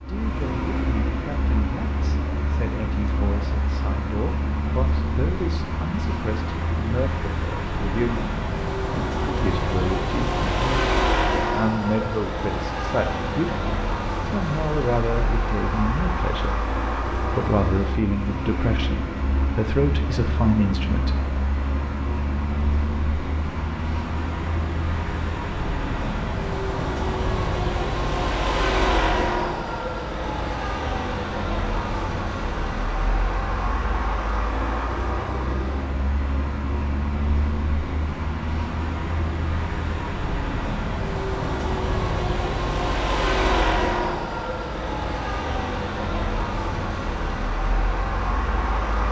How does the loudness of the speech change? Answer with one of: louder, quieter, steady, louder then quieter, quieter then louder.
louder.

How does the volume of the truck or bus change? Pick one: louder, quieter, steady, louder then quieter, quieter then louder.
steady.